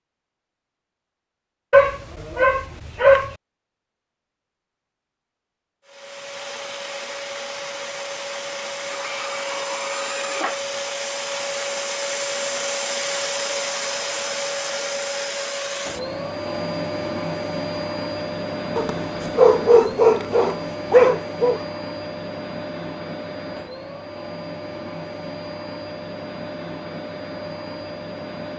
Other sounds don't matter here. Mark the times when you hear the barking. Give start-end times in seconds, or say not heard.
1.7-3.4, 18.8-21.6.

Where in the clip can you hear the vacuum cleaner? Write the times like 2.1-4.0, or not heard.
5.8-28.5.